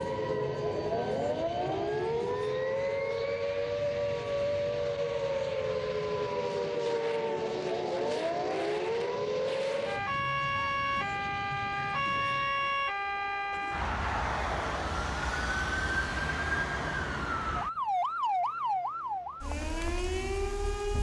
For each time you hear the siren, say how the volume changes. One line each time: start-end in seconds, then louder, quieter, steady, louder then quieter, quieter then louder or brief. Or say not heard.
0.0-20.9 steady.